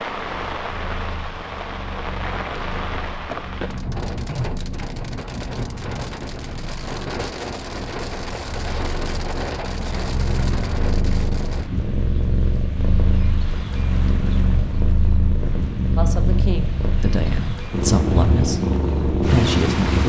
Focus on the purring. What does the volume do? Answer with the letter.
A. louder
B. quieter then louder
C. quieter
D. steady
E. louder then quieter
A.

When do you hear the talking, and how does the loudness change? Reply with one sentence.
The talking can be heard from 15.9 to 20.0 s, getting louder.